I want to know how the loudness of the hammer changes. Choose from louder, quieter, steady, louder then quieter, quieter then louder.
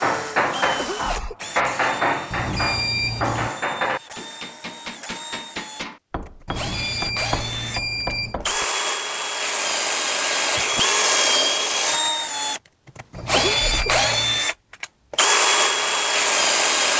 quieter.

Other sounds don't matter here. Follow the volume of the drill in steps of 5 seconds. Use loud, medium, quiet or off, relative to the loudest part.
quiet, medium, loud, loud.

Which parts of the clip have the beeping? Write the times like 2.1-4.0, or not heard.
2.3-3.5, 6.5-8.4, 13.1-14.5.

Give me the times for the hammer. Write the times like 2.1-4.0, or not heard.
0.0-8.7.